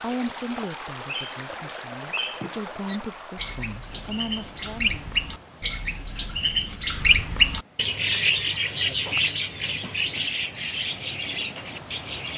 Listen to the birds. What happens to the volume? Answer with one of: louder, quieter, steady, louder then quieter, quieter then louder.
louder then quieter.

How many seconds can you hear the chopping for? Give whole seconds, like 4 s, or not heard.
not heard.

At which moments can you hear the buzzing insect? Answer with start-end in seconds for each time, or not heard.
not heard.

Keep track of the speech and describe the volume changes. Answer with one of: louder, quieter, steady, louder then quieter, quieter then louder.
quieter then louder.